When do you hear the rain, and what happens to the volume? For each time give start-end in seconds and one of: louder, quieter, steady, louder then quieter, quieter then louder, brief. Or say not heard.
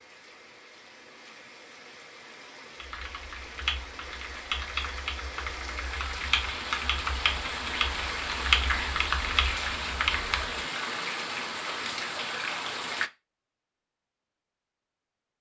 0.0-13.1 louder.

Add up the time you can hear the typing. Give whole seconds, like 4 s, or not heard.
8 s.